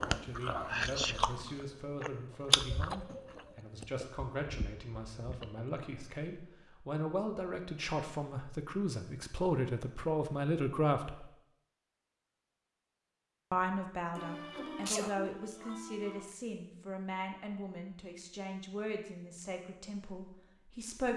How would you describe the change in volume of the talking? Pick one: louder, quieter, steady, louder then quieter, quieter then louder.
louder then quieter.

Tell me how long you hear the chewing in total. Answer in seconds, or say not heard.
6 s.